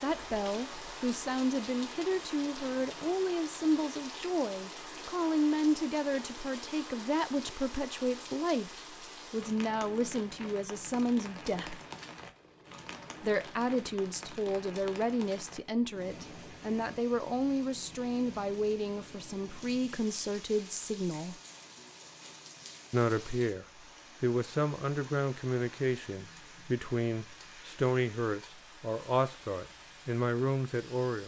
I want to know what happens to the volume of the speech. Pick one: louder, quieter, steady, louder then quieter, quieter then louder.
steady.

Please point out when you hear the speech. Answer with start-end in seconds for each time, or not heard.
0.0-11.8, 13.2-21.4, 22.9-31.2.